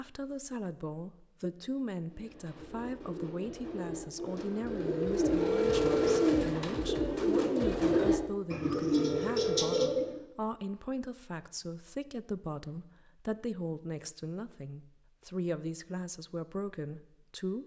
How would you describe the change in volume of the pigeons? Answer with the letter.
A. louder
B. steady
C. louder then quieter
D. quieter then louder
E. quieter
A.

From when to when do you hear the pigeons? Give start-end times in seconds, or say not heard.
2.0-10.2.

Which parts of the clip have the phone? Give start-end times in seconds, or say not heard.
5.3-6.4, 8.9-9.9.